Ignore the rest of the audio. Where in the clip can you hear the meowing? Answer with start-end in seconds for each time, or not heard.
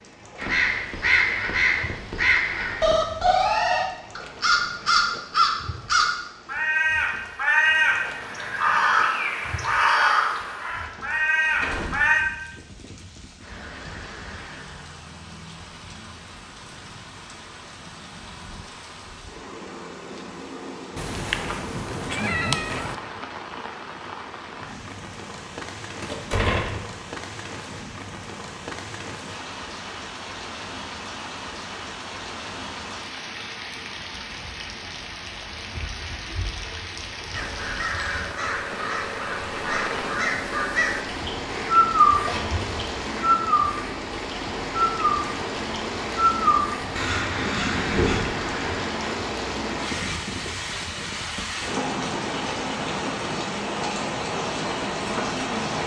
20.9-22.9, 42.2-42.8.